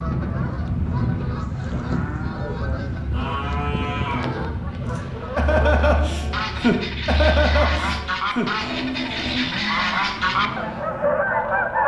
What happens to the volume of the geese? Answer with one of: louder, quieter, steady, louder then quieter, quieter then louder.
louder.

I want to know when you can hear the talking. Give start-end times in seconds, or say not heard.
not heard.